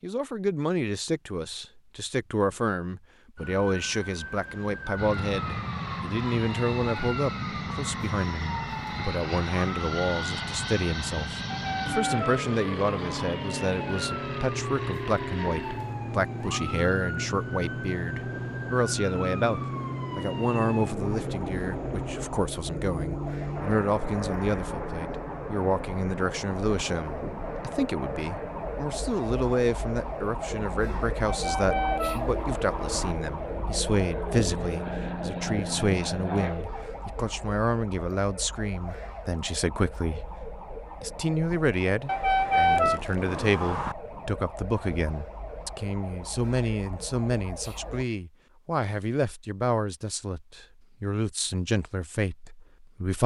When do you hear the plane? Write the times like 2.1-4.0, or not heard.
5.0-36.6.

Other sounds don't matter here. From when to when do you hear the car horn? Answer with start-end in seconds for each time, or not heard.
11.5-13.3, 31.2-33.1, 42.0-44.0.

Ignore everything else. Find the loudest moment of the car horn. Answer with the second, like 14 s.
43 s.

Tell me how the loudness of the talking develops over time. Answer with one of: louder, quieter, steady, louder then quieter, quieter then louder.
steady.